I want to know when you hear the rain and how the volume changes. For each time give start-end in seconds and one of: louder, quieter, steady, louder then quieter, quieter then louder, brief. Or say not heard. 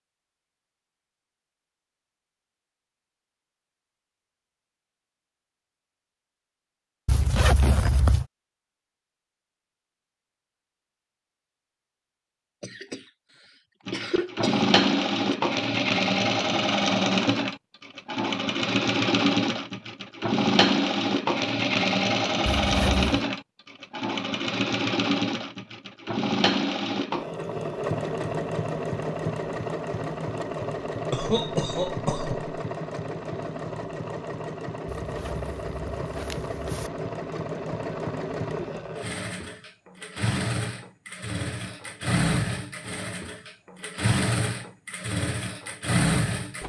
not heard.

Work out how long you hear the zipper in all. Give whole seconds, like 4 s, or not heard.
4 s.